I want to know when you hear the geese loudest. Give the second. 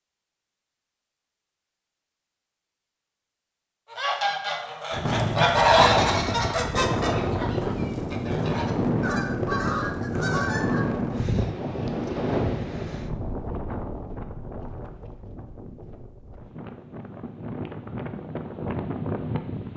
6 s.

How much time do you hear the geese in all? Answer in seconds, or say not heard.
7 s.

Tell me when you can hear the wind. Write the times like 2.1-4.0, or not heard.
4.9-19.7.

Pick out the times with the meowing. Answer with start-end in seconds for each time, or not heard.
not heard.